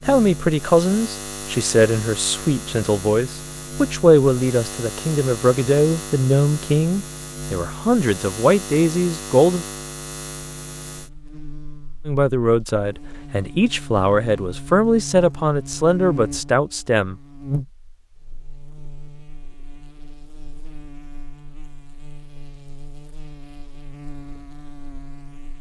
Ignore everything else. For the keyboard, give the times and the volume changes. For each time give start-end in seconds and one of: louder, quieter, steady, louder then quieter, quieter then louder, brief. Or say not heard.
not heard.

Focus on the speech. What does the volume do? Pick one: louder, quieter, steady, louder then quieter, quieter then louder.
steady.